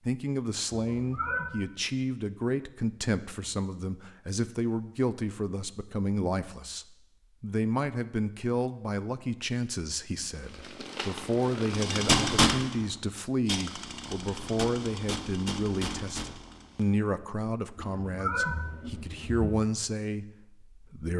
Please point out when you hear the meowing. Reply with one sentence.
The meowing can be heard from 0.7 to 1.6 s and from 17.8 to 19.6 s.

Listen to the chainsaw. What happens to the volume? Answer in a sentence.
The loudness of the chainsaw goes up, then down.